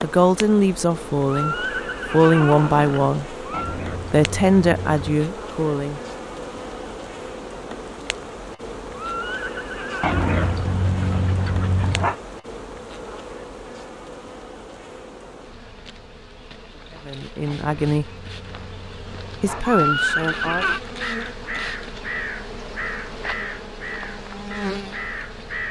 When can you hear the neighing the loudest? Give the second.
20 s.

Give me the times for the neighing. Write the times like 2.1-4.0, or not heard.
1.2-3.8, 8.9-10.7, 19.6-20.8.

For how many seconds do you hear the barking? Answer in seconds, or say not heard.
6 s.